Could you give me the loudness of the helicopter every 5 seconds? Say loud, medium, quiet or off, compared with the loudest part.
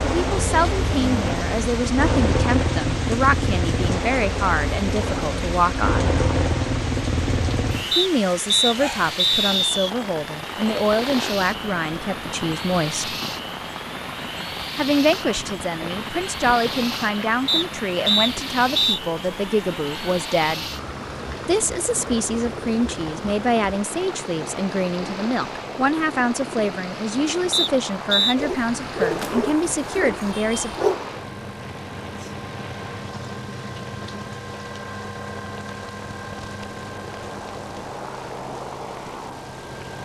loud, loud, medium, medium, medium, medium, medium, medium.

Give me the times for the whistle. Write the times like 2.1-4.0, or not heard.
7.9-9.9, 17.4-19.0, 27.5-28.4.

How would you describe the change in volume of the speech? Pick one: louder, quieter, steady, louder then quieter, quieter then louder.
steady.